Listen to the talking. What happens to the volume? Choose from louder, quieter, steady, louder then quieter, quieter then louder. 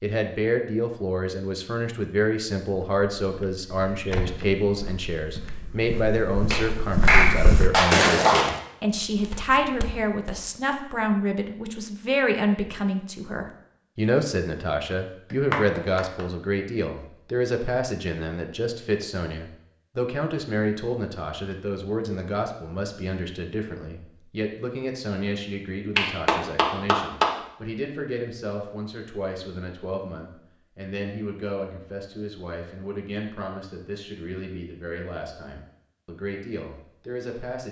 quieter.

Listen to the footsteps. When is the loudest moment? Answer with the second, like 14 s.
8 s.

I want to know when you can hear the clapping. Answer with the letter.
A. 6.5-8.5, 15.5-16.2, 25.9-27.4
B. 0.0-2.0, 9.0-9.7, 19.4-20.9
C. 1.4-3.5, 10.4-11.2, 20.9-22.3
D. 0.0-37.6
A.